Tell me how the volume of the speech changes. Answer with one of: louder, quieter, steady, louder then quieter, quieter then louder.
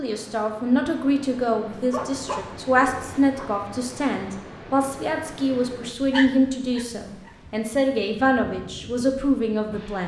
steady.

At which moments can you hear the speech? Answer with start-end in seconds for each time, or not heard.
0.0-10.0.